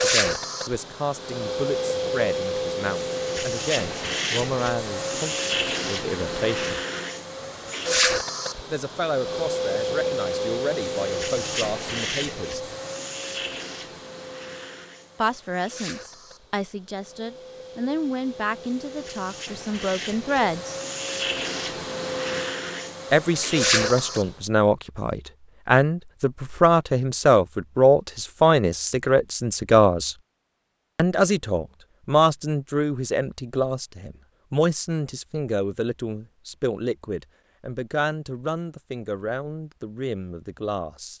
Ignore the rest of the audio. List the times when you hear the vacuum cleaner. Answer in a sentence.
You can hear the vacuum cleaner from 0.0 to 24.3 s.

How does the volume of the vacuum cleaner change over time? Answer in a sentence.
The volume of the vacuum cleaner goes down, then up.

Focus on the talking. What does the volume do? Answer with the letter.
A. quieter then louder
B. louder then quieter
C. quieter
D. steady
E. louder
B.